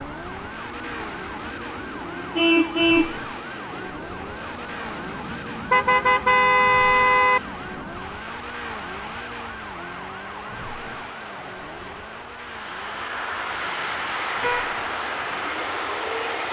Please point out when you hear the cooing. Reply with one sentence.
The cooing can't be heard in this clip.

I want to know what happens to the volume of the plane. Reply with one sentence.
The loudness of the plane goes up.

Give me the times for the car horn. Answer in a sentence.
You can hear the car horn from 2.4 to 3.1 s, from 5.7 to 7.4 s and from 13.5 to 14.8 s.